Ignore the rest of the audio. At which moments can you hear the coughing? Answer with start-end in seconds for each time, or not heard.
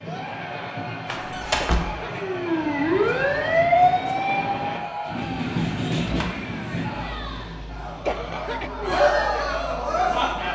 1.6-2.2, 8.1-8.7.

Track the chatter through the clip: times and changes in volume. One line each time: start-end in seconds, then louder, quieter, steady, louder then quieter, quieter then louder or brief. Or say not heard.
0.0-10.5 louder.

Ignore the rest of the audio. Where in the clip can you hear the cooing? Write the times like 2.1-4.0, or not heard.
not heard.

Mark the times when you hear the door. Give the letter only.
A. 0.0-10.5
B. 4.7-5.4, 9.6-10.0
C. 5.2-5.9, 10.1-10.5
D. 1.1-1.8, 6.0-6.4
D.